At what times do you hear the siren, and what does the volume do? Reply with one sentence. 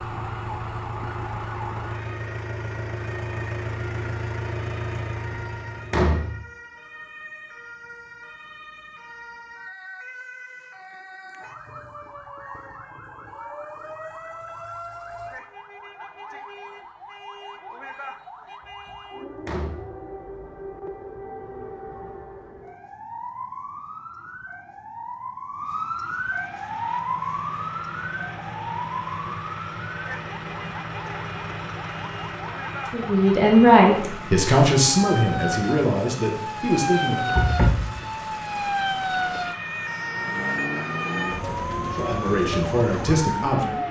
The siren can be heard from 0.0 to 43.8 s, getting louder.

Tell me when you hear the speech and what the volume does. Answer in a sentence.
You can hear the speech from 32.9 to 37.4 s, getting quieter; and briefly from 41.9 to 43.8 s.